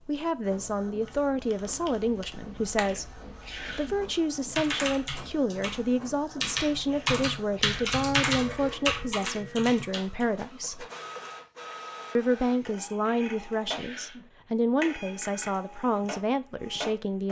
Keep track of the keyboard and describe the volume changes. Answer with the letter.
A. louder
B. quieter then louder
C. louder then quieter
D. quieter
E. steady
A.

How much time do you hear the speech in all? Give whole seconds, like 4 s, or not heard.
16 s.